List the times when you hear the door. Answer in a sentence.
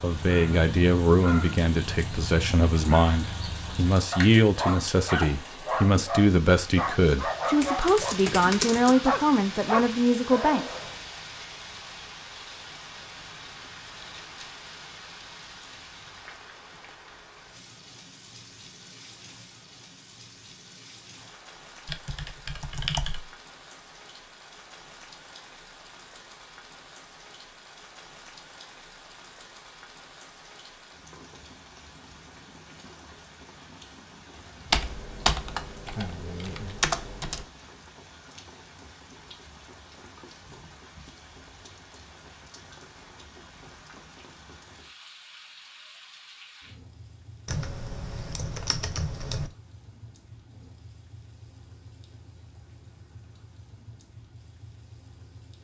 You can't hear the door here.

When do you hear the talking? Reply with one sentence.
You can hear the talking from 0.0 to 10.7 s.